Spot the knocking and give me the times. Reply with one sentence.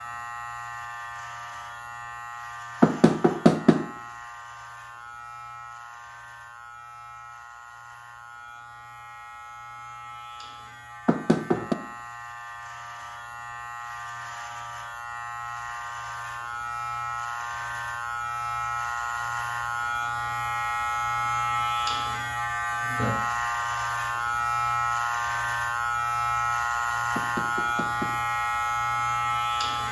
The knocking can be heard from 2.8 to 3.9 s, from 11.1 to 11.8 s and from 27.1 to 28.1 s.